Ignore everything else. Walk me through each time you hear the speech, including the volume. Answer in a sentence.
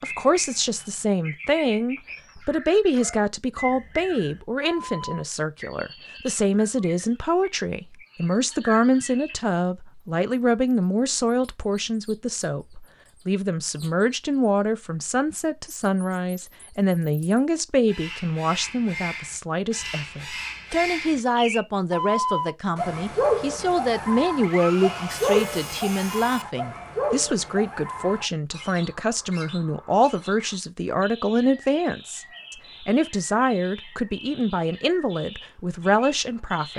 You can hear the speech from 0.0 to 36.7 s, at a steady volume.